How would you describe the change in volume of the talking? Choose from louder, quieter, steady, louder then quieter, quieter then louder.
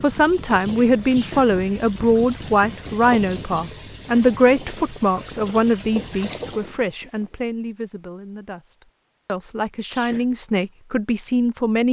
quieter then louder.